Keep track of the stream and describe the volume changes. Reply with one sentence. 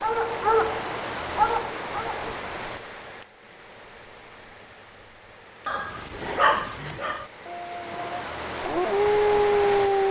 The volume of the stream goes down, then up.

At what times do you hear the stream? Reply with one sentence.
The stream can be heard from 0.0 to 10.0 s.